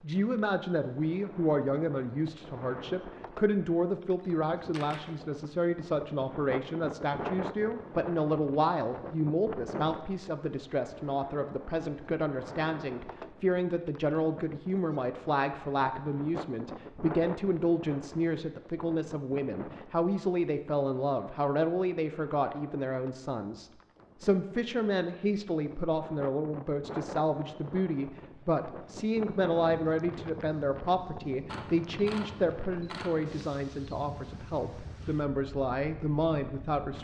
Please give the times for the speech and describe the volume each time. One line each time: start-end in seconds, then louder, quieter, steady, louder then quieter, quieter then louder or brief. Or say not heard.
0.0-37.0 steady.